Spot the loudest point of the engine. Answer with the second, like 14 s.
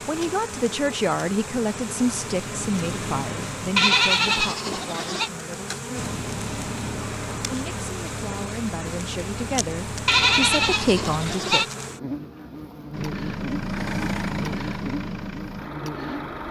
14 s.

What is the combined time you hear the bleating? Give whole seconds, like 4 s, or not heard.
3 s.